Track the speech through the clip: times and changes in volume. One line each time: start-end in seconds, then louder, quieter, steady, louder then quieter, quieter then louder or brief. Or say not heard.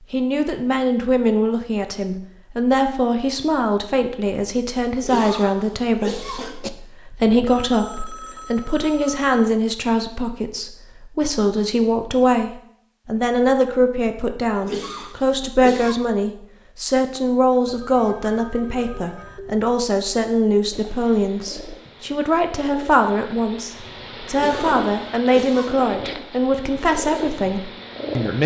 0.1-28.4 steady.